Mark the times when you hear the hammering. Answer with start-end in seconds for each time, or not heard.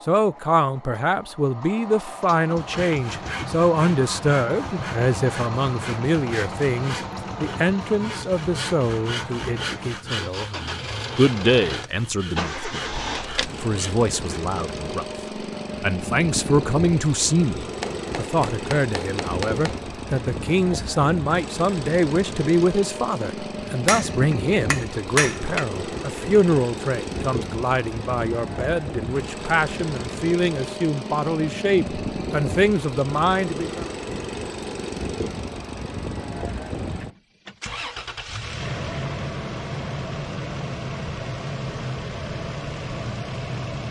17.8-19.8, 23.6-25.6.